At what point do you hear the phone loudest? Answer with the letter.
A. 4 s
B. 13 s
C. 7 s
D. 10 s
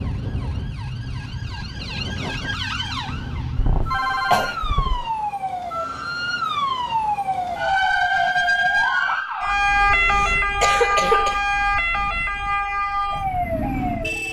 A.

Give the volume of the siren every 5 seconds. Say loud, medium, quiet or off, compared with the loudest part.
medium, loud, loud.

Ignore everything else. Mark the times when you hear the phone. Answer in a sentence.
You can hear the phone from 3.0 to 4.5 s and from 9.8 to 10.6 s.